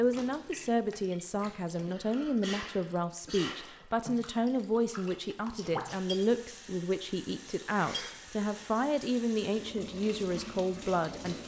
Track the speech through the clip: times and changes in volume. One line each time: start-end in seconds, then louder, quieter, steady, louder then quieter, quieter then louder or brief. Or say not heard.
0.0-11.4 steady.